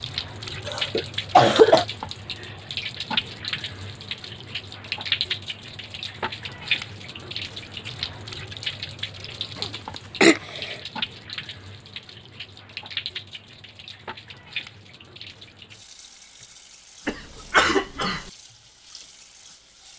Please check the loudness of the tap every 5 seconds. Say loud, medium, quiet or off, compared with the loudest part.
loud, loud, medium, quiet.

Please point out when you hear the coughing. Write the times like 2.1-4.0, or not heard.
0.7-1.9, 9.6-10.8, 17.1-18.2.